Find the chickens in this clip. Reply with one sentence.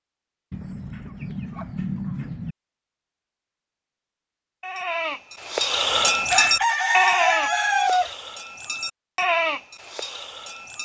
The chickens can be heard from 0.5 to 2.5 s and from 6.3 to 8.1 s.